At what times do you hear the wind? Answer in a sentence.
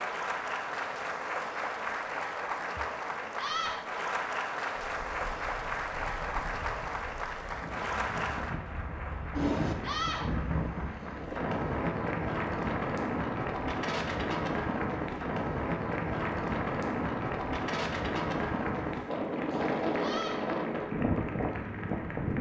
The wind can be heard from 4.8 to 22.3 s.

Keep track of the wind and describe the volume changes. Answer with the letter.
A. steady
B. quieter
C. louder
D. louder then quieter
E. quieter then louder
C.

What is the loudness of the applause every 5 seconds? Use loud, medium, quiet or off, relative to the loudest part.
loud, loud, medium, medium, medium.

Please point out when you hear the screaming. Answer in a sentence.
The screaming can be heard from 3.4 to 3.9 s, from 9.8 to 10.3 s and from 19.9 to 20.4 s.